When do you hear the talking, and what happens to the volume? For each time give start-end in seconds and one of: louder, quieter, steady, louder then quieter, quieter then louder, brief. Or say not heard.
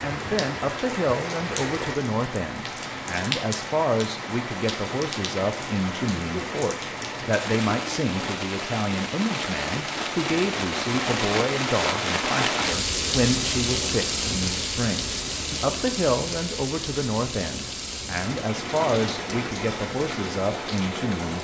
0.0-21.3 steady.